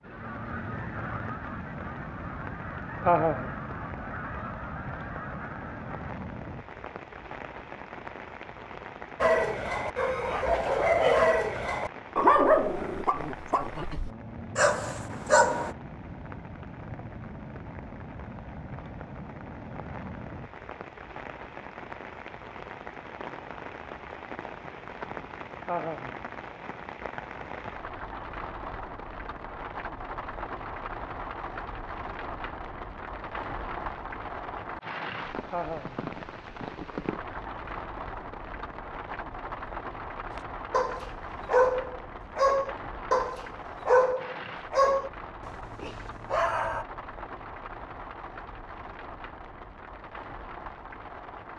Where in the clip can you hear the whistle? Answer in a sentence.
You can't hear the whistle here.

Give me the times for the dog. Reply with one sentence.
The dog can be heard from 9.2 to 15.8 s and from 40.4 to 46.9 s.